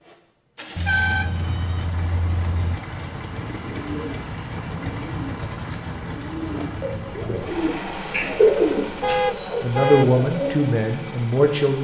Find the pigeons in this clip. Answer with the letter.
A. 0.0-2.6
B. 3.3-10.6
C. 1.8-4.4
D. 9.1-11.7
B.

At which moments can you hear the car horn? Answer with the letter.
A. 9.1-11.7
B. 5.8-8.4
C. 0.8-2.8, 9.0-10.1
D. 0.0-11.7
C.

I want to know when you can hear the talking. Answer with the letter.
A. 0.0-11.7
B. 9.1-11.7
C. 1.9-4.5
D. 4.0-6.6
B.